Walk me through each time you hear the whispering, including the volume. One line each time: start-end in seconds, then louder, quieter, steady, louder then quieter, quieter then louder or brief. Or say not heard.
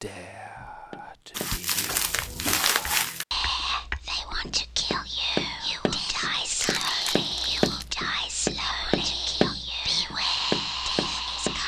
0.0-11.6 louder.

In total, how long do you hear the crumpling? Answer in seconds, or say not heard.
3 s.